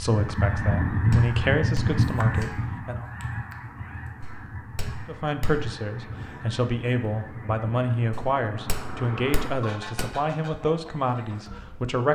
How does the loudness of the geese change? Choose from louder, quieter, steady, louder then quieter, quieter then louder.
quieter.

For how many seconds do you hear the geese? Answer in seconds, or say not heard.
12 s.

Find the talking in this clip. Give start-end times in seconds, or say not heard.
0.0-3.0, 5.0-12.0.